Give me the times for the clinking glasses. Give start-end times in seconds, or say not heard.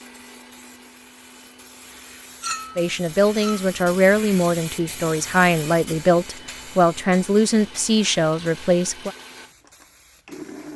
2.4-3.6.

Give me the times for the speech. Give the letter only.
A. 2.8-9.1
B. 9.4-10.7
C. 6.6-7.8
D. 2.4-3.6
A.